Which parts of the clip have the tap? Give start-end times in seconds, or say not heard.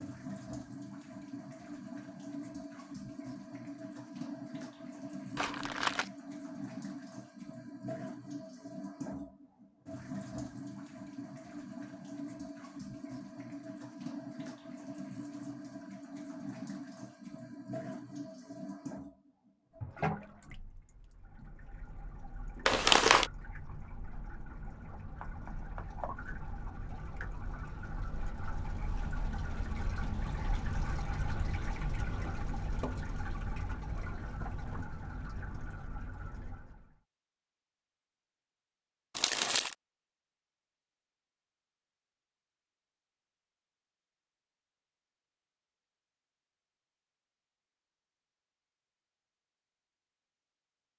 0.0-37.0.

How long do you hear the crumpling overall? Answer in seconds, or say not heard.
2 s.